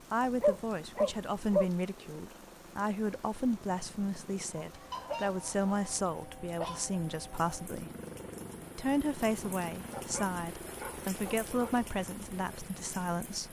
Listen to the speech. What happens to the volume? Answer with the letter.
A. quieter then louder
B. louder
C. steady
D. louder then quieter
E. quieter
C.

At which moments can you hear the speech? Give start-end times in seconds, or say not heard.
0.1-7.9, 8.8-13.4.